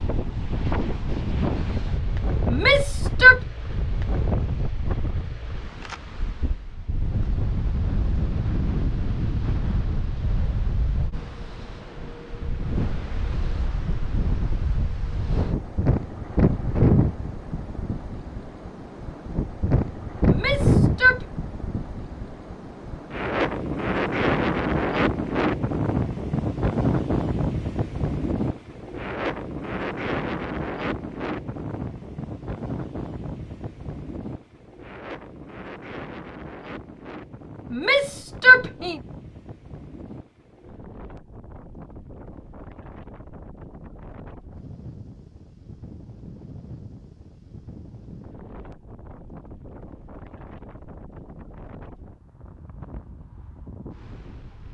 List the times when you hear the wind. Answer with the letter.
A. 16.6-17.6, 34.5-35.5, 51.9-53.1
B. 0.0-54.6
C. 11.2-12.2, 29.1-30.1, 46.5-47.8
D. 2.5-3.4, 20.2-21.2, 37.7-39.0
B.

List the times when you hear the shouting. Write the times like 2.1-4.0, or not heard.
2.5-3.4, 20.2-21.2, 37.7-39.0.